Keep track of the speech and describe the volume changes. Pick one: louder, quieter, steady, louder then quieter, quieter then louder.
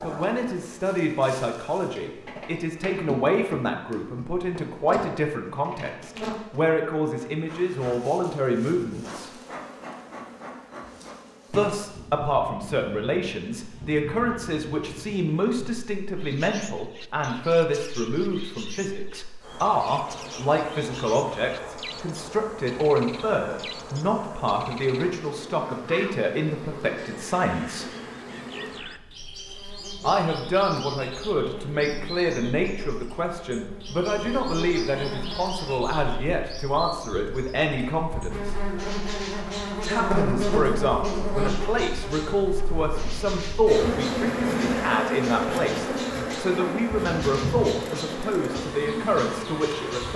steady.